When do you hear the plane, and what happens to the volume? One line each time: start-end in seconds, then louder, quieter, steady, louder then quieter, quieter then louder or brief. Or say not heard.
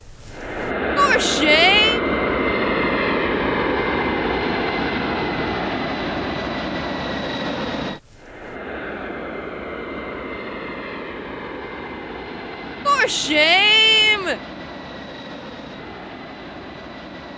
0.0-17.3 quieter.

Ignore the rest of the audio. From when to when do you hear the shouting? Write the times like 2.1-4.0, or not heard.
0.9-2.0, 12.8-14.4.